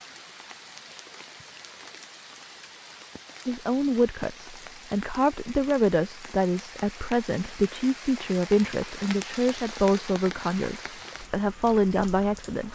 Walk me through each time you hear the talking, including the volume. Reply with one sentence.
The talking can be heard from 3.5 to 12.7 s, at a steady volume.